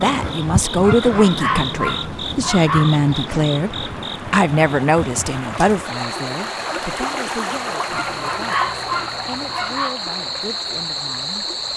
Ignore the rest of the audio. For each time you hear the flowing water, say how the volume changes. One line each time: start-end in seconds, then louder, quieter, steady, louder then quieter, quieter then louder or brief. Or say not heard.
2.9-11.7 louder then quieter.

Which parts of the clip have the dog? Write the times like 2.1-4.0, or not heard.
0.8-3.5, 7.9-9.9.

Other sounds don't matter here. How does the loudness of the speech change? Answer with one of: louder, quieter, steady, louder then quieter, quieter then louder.
quieter.